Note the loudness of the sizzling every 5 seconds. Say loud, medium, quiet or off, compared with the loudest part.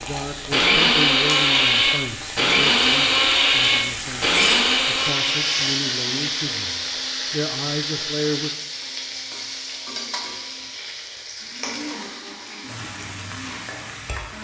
loud, loud, medium.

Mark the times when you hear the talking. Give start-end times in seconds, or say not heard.
0.0-8.5.